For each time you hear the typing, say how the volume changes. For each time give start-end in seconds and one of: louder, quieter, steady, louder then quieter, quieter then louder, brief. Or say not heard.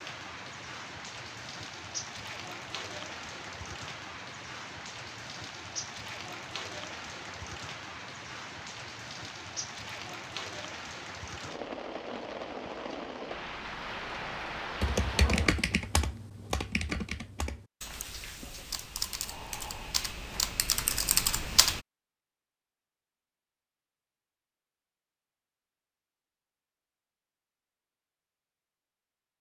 14.8-21.8 quieter then louder.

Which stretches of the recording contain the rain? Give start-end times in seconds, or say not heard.
0.0-15.7.